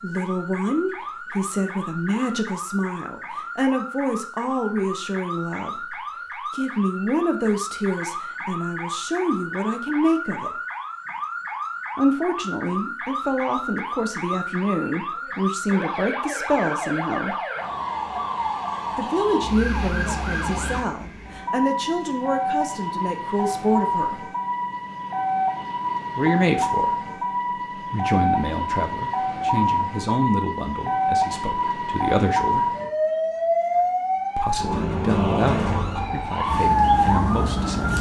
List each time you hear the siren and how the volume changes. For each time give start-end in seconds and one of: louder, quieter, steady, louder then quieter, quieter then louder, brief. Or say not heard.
0.0-37.9 louder.